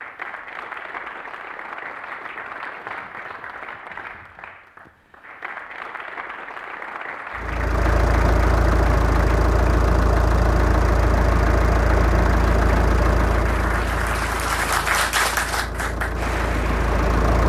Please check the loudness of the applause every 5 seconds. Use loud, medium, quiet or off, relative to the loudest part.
medium, medium, loud, loud.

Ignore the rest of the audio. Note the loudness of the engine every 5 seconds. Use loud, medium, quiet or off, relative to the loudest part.
off, loud, loud, loud.